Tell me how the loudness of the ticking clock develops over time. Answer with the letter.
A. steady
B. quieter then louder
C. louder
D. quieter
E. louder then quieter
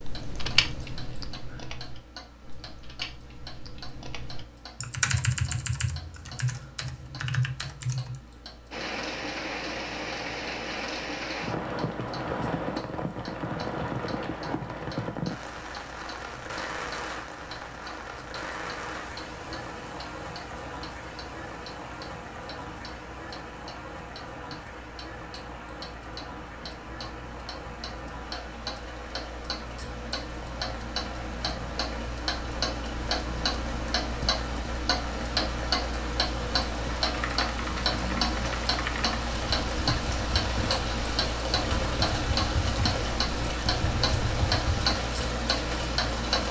C.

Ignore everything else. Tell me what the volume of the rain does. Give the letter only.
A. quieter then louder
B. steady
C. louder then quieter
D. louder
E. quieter
A.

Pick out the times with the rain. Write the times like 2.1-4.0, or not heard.
8.7-46.4.